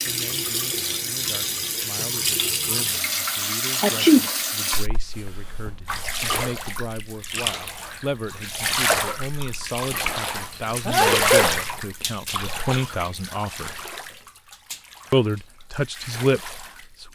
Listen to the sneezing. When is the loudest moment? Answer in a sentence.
The loudest moment of the sneezing is at 4 seconds.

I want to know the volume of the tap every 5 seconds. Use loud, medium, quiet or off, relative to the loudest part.
loud, loud, loud, quiet.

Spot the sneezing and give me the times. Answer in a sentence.
The sneezing can be heard from 3.8 to 4.2 s and from 10.8 to 11.6 s.